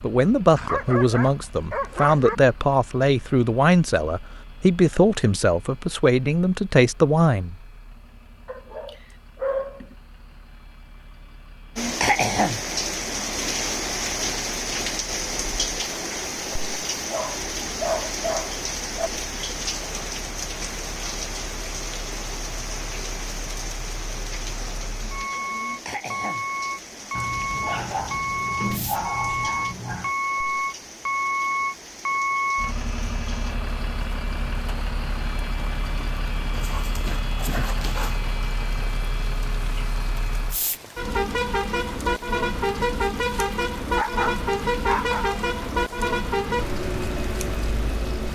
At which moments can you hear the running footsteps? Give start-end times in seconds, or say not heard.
not heard.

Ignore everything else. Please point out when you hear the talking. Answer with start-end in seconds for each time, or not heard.
0.0-7.5.